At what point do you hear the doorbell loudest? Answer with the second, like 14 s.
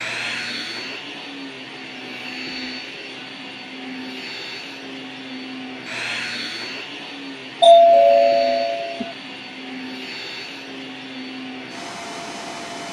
8 s.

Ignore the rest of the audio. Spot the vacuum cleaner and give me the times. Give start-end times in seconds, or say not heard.
0.0-12.8.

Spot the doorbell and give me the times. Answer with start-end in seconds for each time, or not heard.
7.6-9.1.